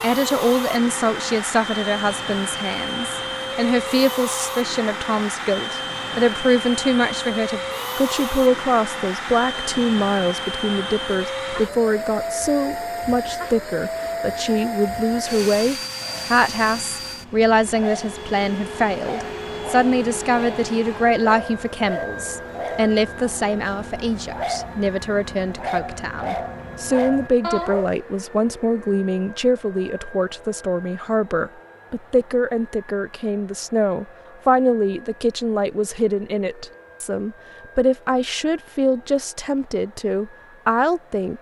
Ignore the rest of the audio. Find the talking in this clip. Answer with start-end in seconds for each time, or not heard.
0.0-41.3.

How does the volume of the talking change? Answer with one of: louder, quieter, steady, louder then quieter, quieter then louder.
steady.